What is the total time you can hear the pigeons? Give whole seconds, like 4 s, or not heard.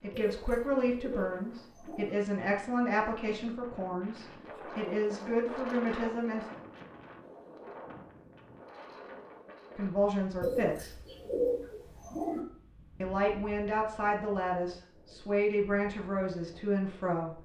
4 s.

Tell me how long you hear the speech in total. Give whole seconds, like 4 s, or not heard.
12 s.